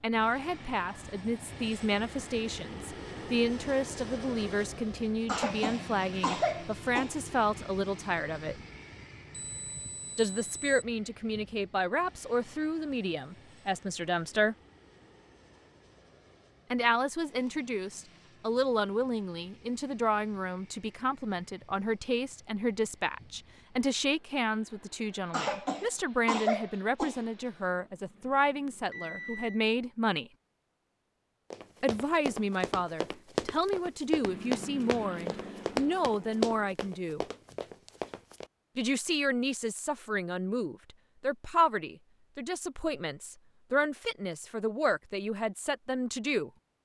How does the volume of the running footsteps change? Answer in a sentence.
The volume of the running footsteps goes up, then down.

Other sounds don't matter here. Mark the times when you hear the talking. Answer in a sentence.
The talking can be heard from 0.0 to 8.6 s, from 10.2 to 14.6 s, from 16.7 to 30.3 s, from 31.8 to 37.2 s and from 38.8 to 46.5 s.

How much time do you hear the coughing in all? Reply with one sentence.
The coughing can be heard for 4 seconds in total.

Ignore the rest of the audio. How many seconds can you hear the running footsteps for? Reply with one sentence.
You can hear the running footsteps for 7 seconds altogether.